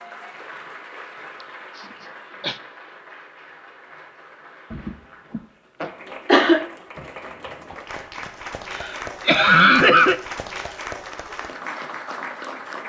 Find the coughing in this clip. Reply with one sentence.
You can hear the coughing from 1.4 to 2.6 s, from 4.7 to 6.7 s and from 8.7 to 10.2 s.